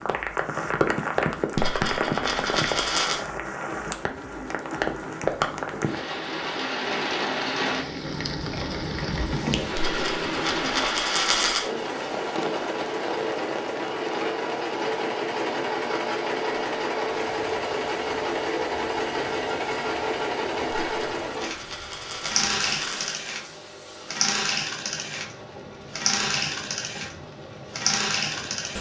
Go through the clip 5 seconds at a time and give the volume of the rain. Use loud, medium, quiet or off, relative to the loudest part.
loud, loud, medium, quiet, quiet, quiet.